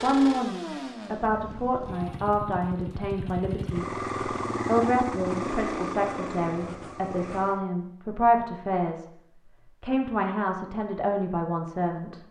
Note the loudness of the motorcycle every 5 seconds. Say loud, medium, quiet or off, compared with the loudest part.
loud, loud, off.